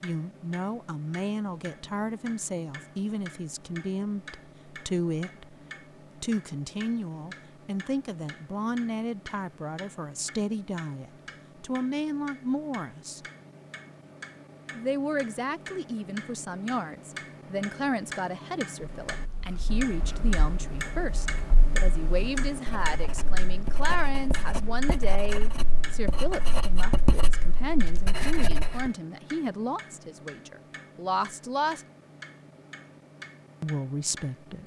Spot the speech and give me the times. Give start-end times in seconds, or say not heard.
0.0-5.5, 6.2-13.2, 14.8-31.9, 33.6-34.6.